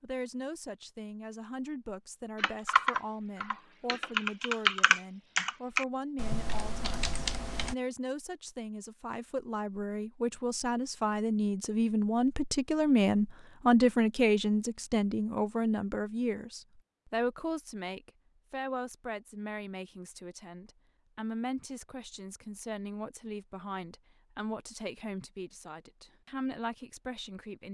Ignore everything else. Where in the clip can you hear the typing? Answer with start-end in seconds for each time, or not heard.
2.4-7.8.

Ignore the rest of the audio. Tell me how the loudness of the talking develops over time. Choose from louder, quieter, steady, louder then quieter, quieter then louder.
louder then quieter.